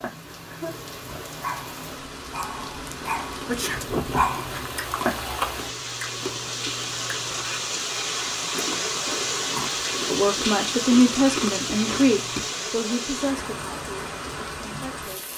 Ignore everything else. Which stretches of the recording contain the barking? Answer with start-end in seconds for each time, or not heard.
0.0-5.2.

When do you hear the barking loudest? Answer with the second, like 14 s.
4 s.